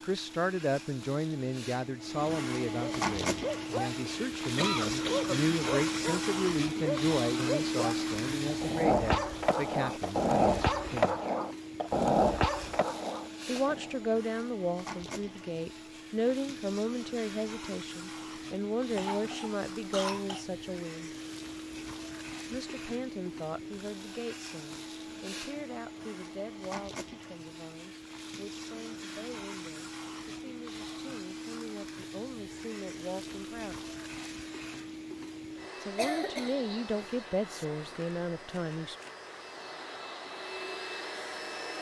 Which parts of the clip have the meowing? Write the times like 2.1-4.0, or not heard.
not heard.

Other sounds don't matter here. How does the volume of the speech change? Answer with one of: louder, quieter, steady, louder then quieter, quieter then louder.
quieter then louder.